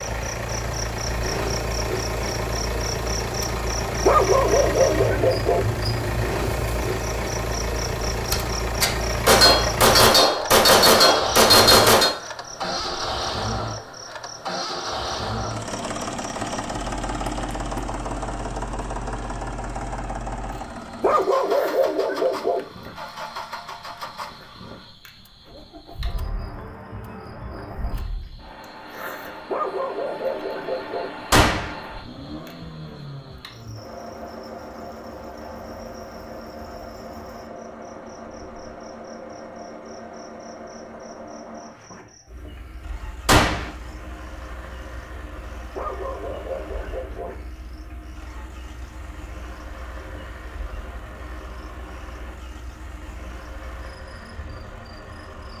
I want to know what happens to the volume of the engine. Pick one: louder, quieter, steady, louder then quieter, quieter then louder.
quieter.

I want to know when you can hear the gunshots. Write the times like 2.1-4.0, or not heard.
8.3-12.2, 31.3-31.8, 43.2-43.7.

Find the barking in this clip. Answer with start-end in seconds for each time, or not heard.
4.0-5.7, 21.0-22.6, 29.4-31.1, 45.8-47.4.